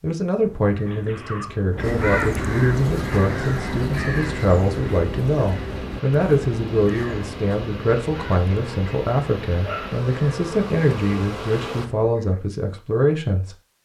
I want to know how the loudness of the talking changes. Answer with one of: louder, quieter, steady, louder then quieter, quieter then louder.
steady.